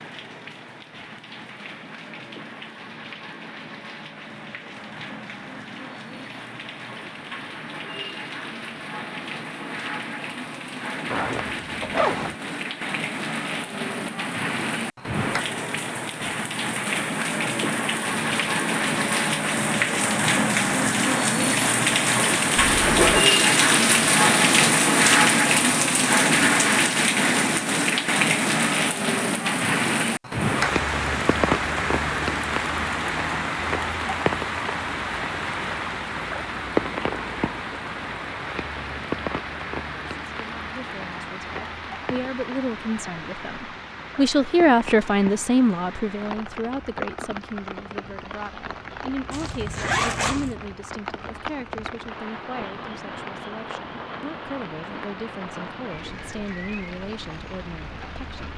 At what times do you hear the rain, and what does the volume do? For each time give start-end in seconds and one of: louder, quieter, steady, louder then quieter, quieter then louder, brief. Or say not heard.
0.0-58.5 louder then quieter.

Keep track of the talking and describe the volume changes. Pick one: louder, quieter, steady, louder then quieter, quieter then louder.
louder then quieter.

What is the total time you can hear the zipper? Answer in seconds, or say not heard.
3 s.